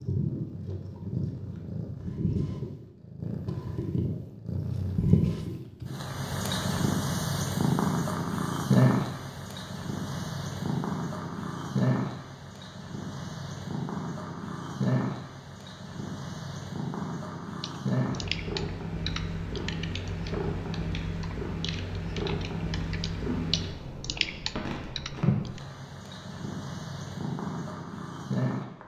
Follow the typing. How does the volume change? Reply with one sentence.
The volume of the typing goes down, then up.